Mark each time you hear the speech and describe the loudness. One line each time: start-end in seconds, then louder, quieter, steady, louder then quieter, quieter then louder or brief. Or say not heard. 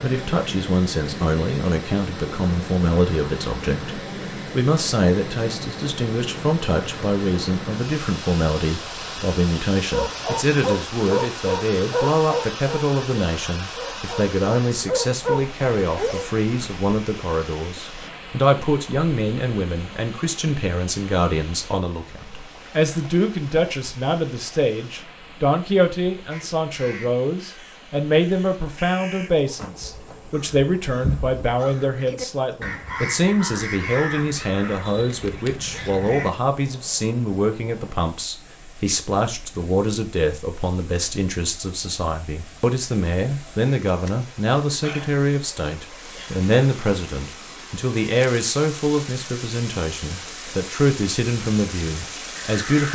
0.0-52.9 steady.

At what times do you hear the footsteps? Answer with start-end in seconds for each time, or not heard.
not heard.